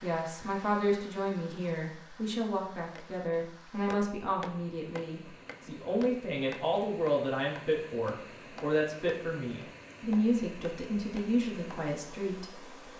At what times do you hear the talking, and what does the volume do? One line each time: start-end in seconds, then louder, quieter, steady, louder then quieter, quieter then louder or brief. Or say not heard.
0.0-12.8 steady.